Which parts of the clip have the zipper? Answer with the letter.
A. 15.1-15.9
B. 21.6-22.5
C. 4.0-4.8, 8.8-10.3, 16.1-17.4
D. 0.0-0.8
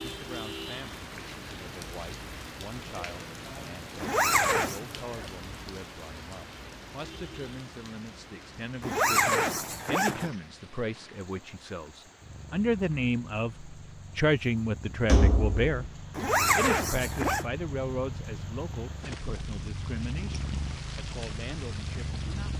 C.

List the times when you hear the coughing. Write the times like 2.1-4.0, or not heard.
not heard.